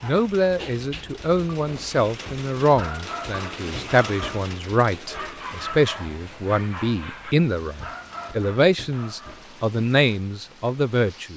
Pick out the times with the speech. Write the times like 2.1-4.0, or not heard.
0.0-11.3.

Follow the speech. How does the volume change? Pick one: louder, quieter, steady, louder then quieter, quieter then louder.
steady.